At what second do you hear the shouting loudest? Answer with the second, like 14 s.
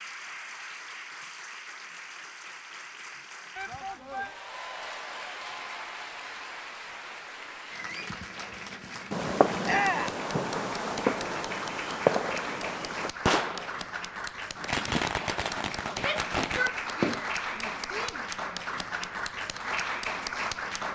10 s.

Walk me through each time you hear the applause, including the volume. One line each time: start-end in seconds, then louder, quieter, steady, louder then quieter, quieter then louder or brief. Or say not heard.
0.0-20.9 louder.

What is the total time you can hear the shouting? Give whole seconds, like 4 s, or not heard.
4 s.